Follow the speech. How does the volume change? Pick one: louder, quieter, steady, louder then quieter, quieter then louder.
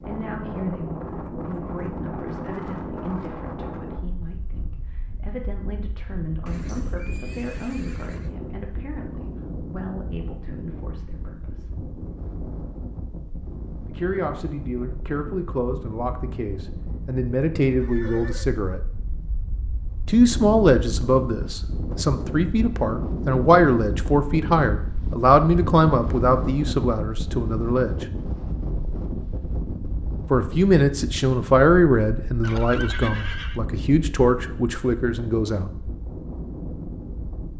louder.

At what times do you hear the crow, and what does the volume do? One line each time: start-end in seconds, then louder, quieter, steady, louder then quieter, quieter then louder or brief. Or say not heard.
not heard.